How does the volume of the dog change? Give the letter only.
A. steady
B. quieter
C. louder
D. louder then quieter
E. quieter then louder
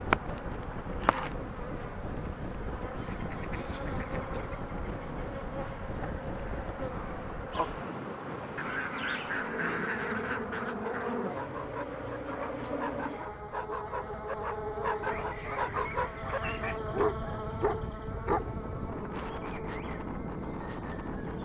C.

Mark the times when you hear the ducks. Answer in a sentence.
You can hear the ducks from 3.0 to 4.7 s, from 8.6 to 11.2 s and from 15.1 to 16.8 s.